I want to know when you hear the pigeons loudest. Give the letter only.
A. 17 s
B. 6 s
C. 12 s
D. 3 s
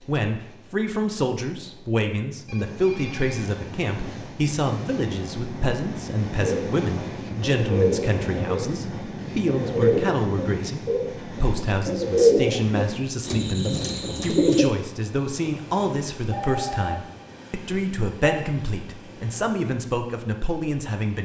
C.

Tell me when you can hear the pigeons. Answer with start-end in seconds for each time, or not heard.
6.4-14.7.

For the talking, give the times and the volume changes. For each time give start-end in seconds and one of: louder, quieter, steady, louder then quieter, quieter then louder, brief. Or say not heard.
0.1-21.2 steady.